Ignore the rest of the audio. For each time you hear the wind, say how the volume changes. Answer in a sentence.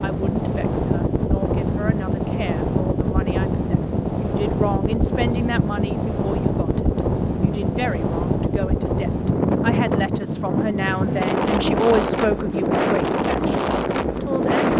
The wind can be heard from 0.0 to 14.7 s, at a steady volume.